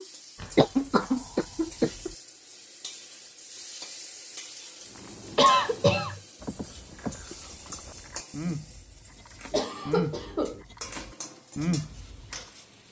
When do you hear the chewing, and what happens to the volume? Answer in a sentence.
The chewing can be heard from 4.8 to 12.4 s, getting louder.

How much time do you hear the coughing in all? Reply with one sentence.
The coughing can be heard for 4 seconds in total.